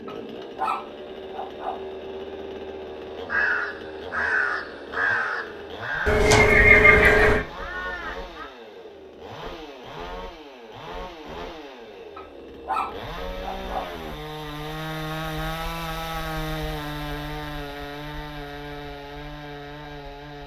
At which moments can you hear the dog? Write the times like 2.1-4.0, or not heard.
0.1-1.9, 12.2-13.9.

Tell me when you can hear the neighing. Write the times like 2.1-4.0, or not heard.
6.0-7.5.